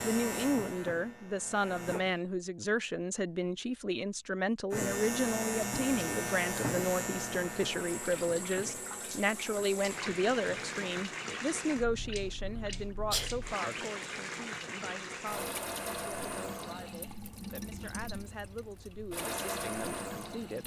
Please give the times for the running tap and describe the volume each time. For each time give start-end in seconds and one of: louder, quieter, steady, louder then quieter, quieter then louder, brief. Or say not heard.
7.6-20.6 steady.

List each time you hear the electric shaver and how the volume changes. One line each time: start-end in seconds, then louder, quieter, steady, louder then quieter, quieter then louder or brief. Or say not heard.
0.0-2.0 brief
4.7-10.8 quieter.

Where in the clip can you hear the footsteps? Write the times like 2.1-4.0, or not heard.
not heard.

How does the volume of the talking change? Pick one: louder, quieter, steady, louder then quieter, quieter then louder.
quieter.